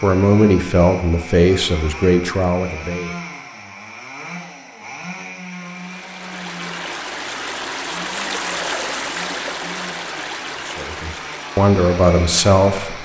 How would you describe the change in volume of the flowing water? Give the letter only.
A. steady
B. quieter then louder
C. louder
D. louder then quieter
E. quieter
D.